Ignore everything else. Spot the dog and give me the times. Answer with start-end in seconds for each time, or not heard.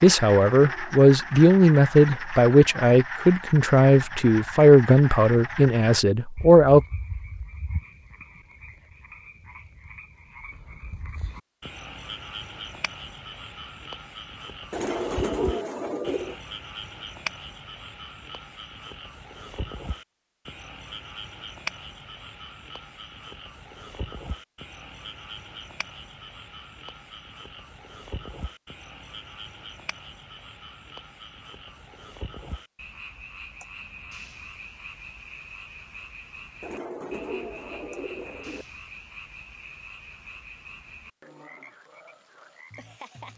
not heard.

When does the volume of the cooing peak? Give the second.
15 s.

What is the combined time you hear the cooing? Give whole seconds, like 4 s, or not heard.
4 s.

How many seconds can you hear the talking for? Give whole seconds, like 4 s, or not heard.
7 s.